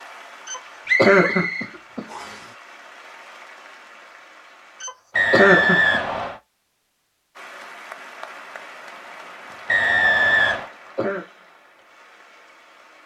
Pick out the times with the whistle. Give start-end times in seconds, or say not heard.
0.8-2.5, 5.2-6.4, 9.7-10.7.